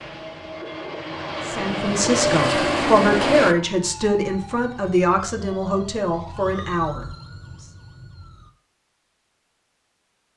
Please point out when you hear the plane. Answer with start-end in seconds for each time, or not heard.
0.0-3.5.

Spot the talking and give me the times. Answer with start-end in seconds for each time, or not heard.
1.4-7.7.